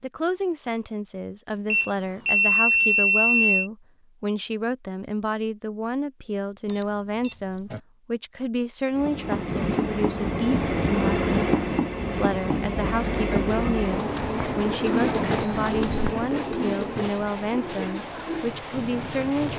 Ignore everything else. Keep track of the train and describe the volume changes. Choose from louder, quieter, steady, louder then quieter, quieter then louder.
quieter.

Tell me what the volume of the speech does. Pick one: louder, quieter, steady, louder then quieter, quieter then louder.
steady.